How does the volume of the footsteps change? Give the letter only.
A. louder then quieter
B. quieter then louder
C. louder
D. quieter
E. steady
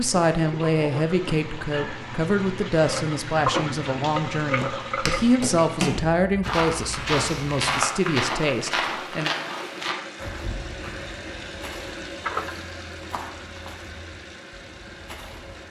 D.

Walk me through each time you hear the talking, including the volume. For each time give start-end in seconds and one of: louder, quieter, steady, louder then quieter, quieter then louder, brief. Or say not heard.
0.0-9.3 steady.